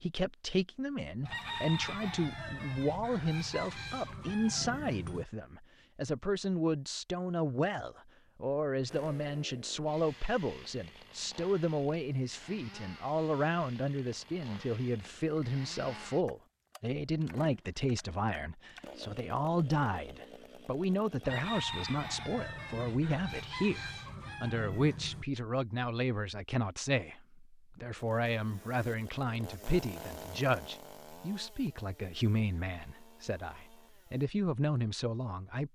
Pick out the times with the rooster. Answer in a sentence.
You can hear the rooster from 1.2 to 5.2 s and from 21.2 to 25.2 s.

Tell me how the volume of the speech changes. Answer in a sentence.
The loudness of the speech stays about the same.